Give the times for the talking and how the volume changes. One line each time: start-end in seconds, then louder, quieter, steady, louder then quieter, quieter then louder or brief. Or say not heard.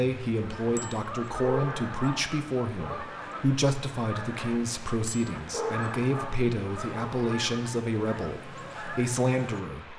0.0-9.9 steady.